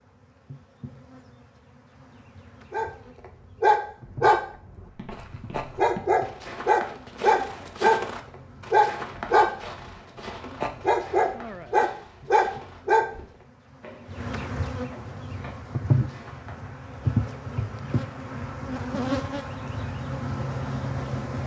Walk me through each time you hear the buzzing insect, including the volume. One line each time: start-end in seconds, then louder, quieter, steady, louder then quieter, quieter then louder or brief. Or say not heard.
0.0-21.4 louder.